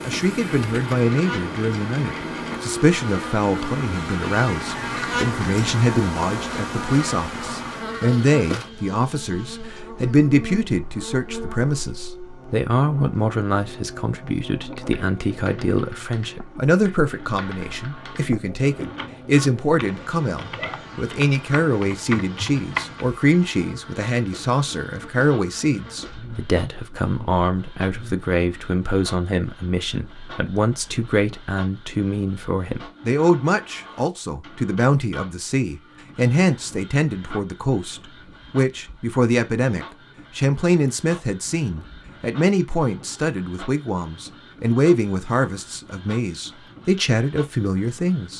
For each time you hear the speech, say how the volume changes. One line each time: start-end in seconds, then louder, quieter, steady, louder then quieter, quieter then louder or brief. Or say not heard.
0.0-48.3 steady.